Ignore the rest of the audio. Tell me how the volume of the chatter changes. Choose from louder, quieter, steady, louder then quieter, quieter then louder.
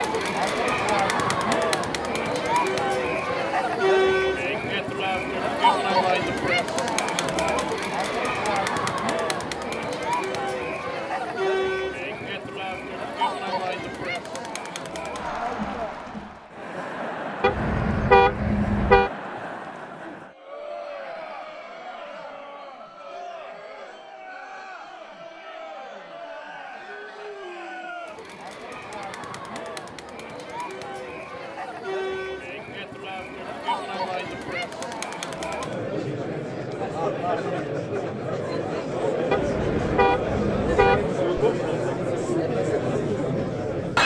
quieter then louder.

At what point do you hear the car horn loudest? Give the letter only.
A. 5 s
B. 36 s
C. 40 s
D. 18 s
D.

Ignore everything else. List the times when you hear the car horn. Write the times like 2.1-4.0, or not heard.
17.4-19.1, 39.3-41.0.